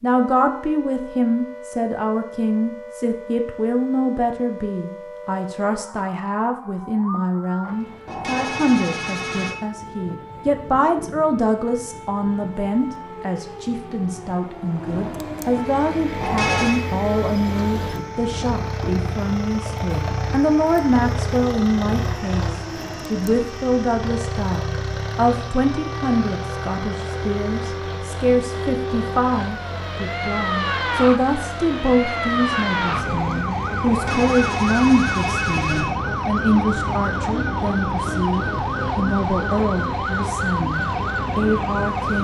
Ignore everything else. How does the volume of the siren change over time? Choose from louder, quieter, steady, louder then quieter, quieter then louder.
louder.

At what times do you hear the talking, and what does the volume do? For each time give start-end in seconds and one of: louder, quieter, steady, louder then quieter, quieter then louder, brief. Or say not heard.
0.0-42.1 steady.